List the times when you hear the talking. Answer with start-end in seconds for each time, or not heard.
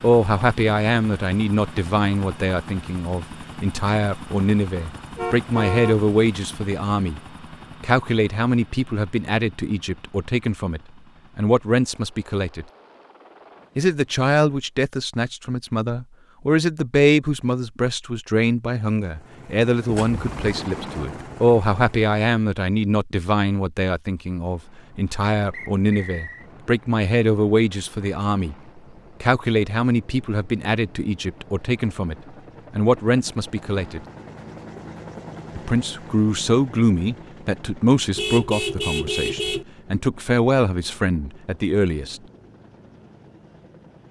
0.0-7.2, 7.8-12.7, 13.8-28.6, 29.2-34.0, 35.5-42.2.